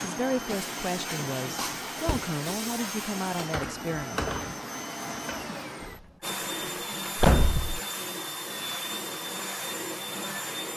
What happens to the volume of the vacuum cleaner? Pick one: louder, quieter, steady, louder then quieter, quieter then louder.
steady.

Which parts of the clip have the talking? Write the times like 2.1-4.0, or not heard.
0.0-4.2.